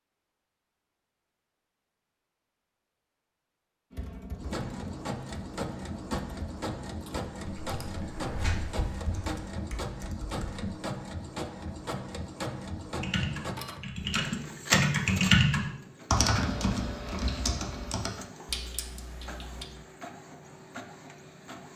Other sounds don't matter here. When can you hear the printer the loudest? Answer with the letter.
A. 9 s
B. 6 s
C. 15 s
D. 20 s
C.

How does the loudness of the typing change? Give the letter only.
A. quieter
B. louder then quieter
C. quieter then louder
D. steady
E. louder
B.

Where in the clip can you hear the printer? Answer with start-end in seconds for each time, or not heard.
4.3-21.7.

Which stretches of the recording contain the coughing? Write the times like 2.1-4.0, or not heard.
not heard.